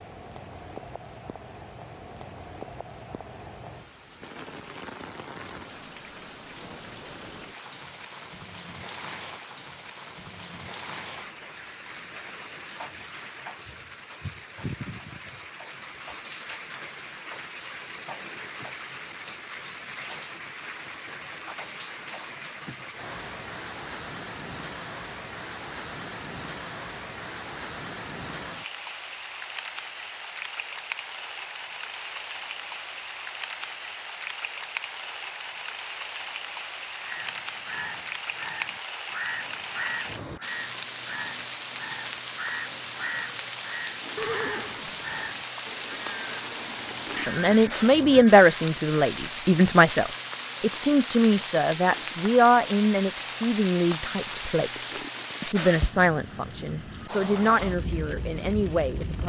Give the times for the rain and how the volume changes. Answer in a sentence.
The rain can be heard from 0.0 to 59.2 s, getting louder.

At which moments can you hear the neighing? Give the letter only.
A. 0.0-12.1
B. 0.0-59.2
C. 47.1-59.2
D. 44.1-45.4
D.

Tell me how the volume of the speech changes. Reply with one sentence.
The volume of the speech goes down.